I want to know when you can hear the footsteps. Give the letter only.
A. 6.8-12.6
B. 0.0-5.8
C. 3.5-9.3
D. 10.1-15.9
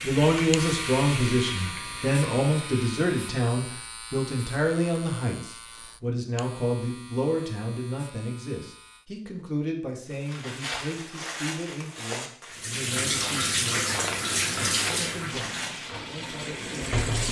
D.